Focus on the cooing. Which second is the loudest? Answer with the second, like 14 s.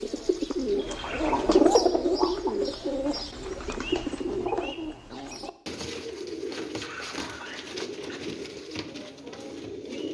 2 s.